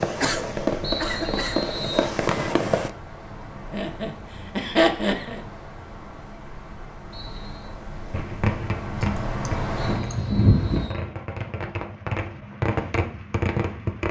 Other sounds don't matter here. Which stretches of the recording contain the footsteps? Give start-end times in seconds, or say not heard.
not heard.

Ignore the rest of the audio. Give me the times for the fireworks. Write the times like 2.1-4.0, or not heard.
0.0-2.9, 8.1-14.0.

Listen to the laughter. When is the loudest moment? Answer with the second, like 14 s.
5 s.